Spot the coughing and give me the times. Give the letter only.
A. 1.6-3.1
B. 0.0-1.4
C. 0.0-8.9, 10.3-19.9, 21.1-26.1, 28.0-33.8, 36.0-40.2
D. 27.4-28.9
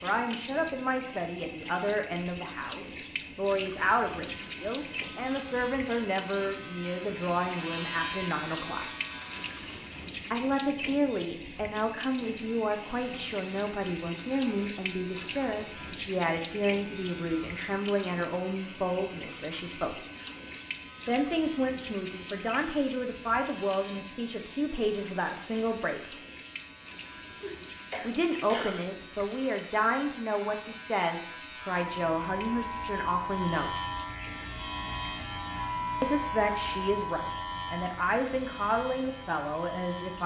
D.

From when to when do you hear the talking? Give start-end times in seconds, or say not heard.
0.0-8.9, 10.3-19.9, 21.1-26.1, 28.0-33.8, 36.0-40.2.